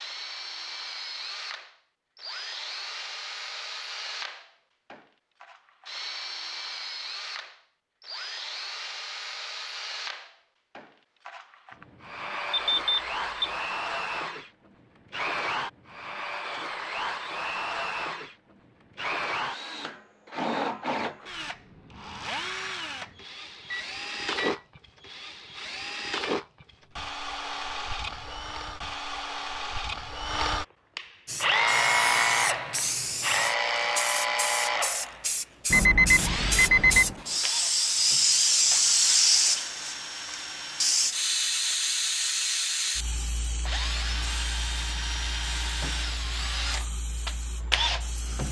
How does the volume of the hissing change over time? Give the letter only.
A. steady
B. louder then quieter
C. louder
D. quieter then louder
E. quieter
B.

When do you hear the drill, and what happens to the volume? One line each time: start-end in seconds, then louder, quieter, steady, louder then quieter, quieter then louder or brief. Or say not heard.
0.0-41.1 louder
43.5-48.4 louder.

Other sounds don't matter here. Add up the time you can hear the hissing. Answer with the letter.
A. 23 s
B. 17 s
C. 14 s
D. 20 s
B.